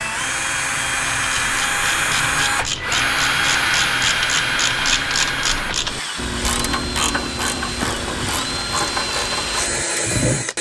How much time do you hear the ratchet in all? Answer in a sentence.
You can hear the ratchet for 9 seconds altogether.